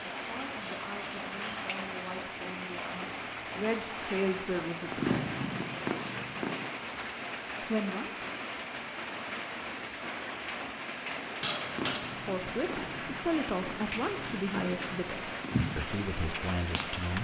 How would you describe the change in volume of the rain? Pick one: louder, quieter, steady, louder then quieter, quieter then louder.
steady.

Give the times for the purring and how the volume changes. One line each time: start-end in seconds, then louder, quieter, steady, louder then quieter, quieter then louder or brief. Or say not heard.
4.8-6.7 brief
11.6-17.1 louder then quieter.